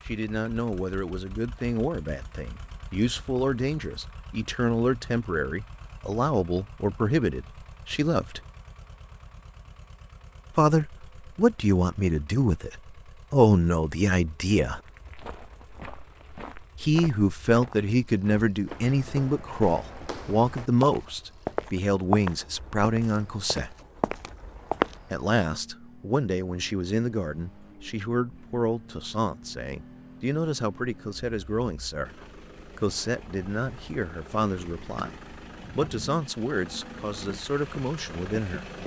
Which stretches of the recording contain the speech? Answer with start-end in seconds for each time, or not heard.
0.1-8.4, 10.6-14.8, 16.8-23.8, 25.1-35.1, 35.8-38.6.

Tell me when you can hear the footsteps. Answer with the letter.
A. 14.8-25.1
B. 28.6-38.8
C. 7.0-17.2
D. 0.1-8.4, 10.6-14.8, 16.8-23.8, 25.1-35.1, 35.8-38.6
A.